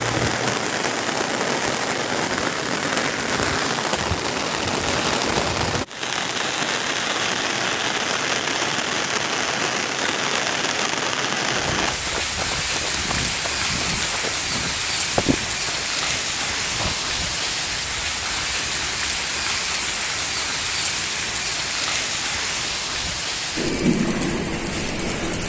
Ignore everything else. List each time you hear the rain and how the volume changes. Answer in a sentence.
You can hear the rain from 0.0 to 25.4 s, at a steady volume.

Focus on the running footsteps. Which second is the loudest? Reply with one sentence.
The loudest moment of the running footsteps is at 15 seconds.